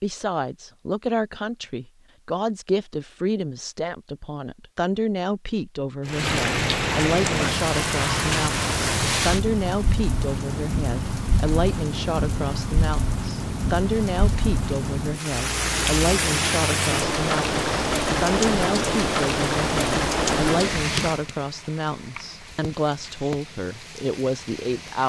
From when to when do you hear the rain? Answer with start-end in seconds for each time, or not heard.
6.0-25.0.